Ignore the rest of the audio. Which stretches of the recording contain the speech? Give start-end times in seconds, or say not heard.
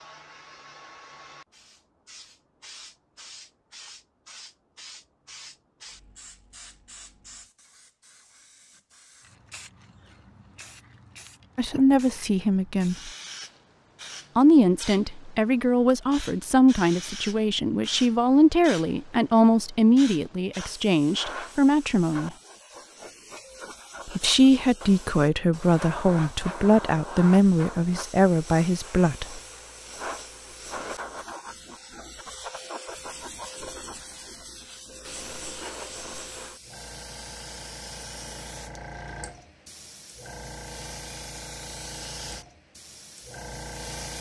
11.6-13.1, 14.3-22.3, 24.1-29.4.